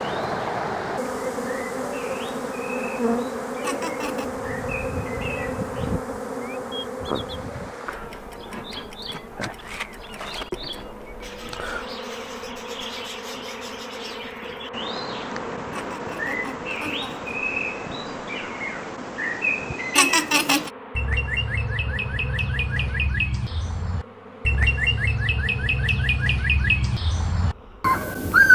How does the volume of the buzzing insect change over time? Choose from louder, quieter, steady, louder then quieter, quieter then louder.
quieter.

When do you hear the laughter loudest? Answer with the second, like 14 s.
20 s.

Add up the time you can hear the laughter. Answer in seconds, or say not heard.
3 s.